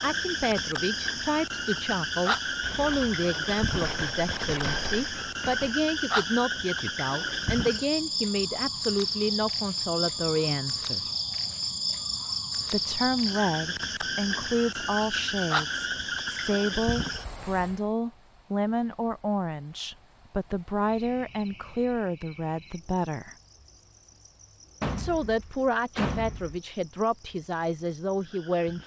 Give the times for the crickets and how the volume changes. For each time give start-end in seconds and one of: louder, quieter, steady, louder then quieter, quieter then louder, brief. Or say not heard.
0.0-28.8 quieter.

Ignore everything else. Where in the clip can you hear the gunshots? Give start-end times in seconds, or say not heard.
2.6-5.8, 24.8-26.6.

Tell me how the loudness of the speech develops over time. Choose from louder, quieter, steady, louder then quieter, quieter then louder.
steady.